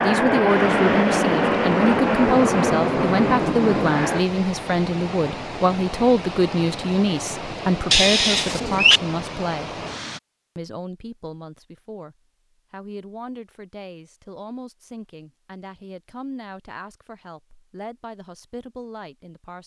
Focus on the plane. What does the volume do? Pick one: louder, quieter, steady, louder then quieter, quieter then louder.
steady.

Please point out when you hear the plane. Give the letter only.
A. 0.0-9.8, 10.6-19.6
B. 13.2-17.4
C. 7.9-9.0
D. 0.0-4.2
D.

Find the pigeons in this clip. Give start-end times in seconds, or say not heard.
7.9-9.0.